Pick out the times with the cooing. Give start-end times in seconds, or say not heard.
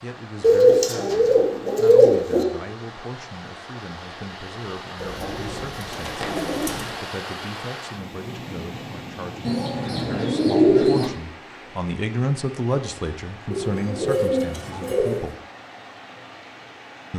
0.4-2.5, 5.0-6.9, 9.4-11.1, 13.5-15.3.